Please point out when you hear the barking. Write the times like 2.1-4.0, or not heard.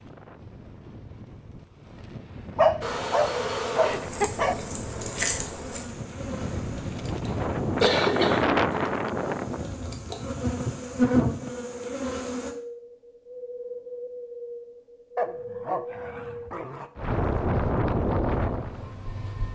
2.5-4.5, 15.2-16.9.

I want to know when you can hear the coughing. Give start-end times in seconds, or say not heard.
7.8-8.8.